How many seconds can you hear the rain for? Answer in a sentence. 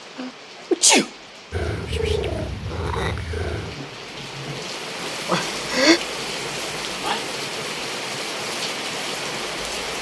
You can hear the rain for 10 seconds altogether.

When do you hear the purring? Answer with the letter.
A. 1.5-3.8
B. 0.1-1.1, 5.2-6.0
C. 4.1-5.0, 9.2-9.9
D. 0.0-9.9
A.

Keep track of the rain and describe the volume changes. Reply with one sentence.
The volume of the rain goes up.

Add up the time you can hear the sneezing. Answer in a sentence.
The sneezing can be heard for 2 seconds in total.